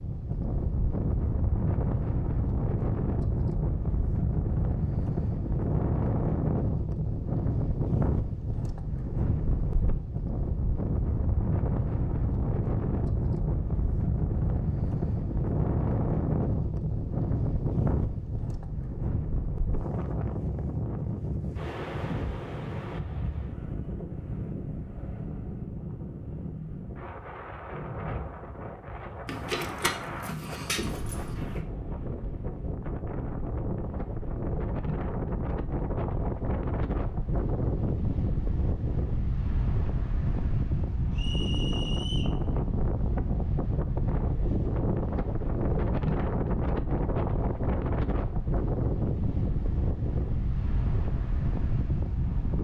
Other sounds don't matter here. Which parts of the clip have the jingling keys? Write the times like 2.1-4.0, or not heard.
29.2-31.6.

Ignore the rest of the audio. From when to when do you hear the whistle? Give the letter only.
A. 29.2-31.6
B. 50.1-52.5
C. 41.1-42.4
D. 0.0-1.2
C.